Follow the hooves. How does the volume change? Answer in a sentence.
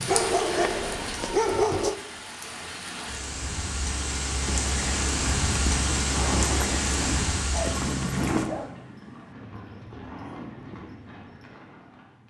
The volume of the hooves goes down.